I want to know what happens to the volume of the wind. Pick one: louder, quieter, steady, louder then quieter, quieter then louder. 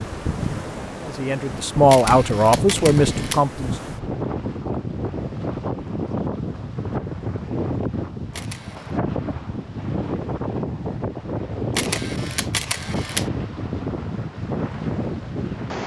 steady.